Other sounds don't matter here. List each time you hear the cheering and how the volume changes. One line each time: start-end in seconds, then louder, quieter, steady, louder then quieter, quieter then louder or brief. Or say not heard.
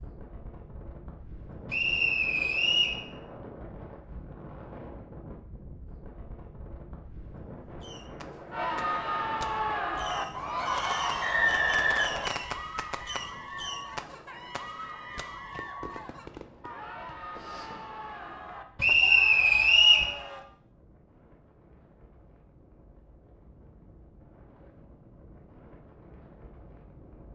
8.5-20.4 quieter.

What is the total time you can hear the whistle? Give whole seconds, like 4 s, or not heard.
4 s.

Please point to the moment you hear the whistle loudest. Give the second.
20 s.